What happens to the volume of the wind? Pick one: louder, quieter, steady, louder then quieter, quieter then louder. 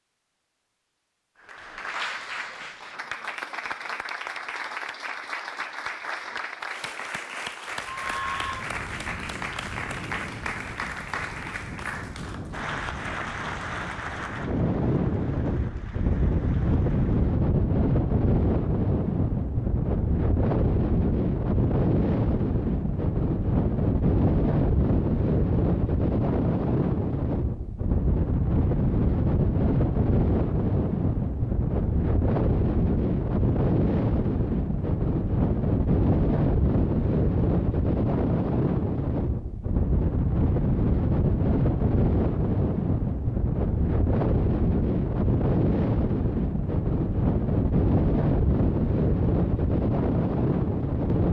louder.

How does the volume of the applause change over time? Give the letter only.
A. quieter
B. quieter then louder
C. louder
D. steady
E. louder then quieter
A.